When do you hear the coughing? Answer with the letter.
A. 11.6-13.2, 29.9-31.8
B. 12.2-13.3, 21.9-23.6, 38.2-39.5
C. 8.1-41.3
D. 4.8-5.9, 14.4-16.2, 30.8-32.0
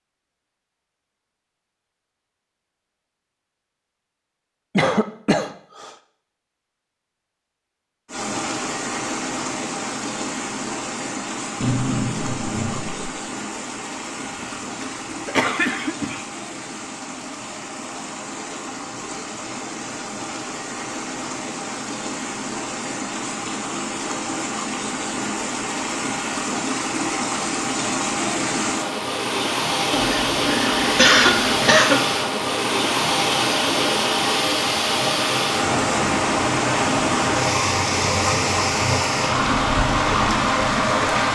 D.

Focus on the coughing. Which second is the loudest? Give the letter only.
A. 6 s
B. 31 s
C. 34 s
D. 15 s
B.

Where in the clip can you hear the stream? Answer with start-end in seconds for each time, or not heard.
8.1-41.3.